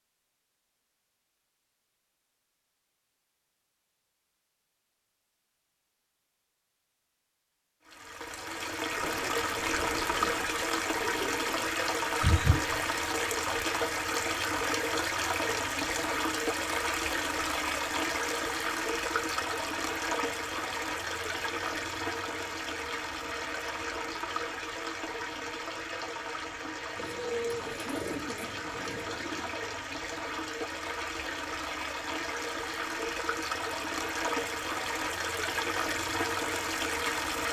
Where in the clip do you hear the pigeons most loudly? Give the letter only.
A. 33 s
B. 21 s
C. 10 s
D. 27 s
D.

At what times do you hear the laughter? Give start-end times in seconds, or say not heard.
12.2-12.8.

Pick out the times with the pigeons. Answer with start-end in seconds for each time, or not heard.
8.9-11.7, 26.9-29.6.